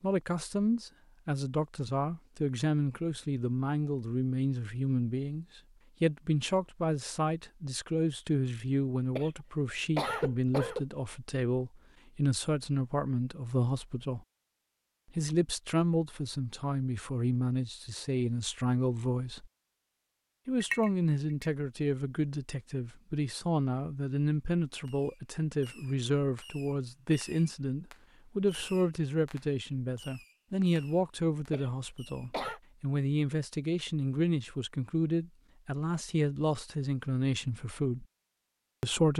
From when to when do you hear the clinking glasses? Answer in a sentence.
You can hear the clinking glasses from 20.6 to 21.5 s.